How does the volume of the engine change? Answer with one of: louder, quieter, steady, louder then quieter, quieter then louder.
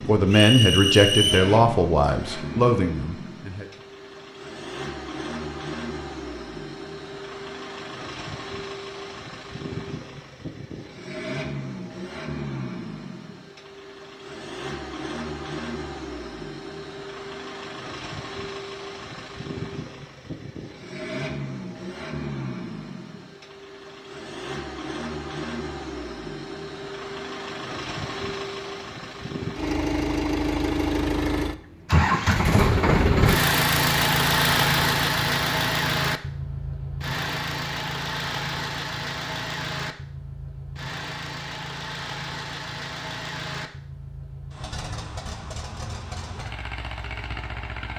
louder then quieter.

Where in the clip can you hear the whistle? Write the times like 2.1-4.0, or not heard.
0.3-1.6.